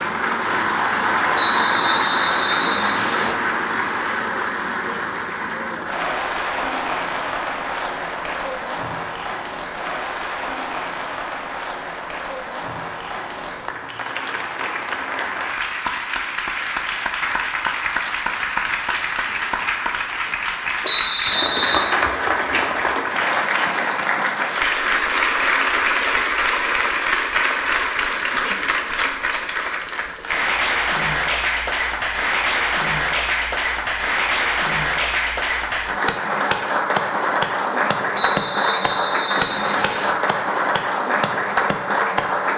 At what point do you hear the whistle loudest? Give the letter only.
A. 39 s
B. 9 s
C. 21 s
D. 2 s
C.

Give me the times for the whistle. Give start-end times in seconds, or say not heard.
1.4-3.4, 20.8-21.9, 38.1-40.1.